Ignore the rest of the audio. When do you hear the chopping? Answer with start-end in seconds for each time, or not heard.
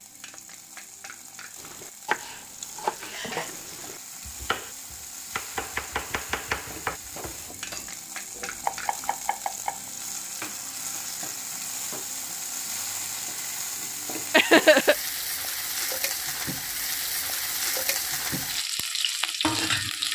1.6-9.9.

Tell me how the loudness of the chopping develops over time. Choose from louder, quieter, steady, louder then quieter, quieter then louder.
quieter then louder.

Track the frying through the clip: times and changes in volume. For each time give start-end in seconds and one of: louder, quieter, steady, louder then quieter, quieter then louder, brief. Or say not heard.
0.0-20.1 louder.